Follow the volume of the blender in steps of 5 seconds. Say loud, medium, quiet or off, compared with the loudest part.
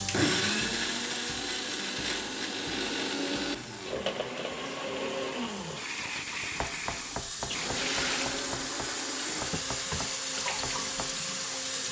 loud, medium, medium.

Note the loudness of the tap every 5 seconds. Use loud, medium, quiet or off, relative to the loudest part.
medium, loud, loud.